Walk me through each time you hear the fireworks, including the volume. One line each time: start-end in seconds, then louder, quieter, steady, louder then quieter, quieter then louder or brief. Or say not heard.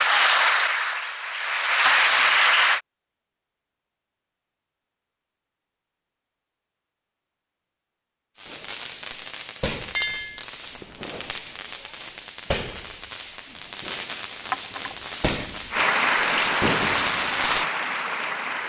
8.3-17.6 louder.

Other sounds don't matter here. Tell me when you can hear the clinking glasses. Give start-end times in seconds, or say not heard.
1.9-2.3, 9.9-10.4, 14.5-14.9.